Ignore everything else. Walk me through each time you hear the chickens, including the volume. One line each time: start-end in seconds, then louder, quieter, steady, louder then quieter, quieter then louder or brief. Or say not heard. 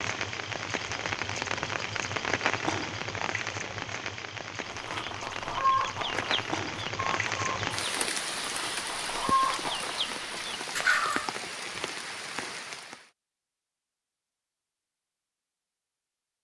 4.7-11.3 quieter then louder.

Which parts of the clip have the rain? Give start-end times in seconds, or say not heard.
0.0-13.1.